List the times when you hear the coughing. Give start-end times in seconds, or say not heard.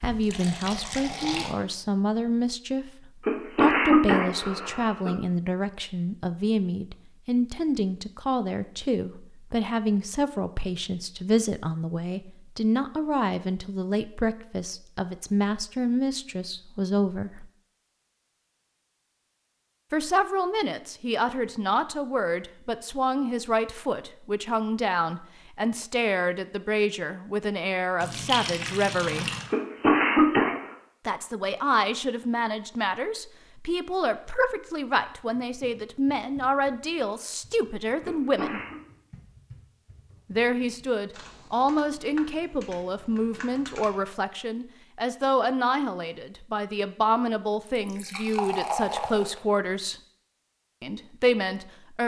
3.2-5.1, 29.5-30.6, 38.0-38.8.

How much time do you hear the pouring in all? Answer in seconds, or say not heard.
5 s.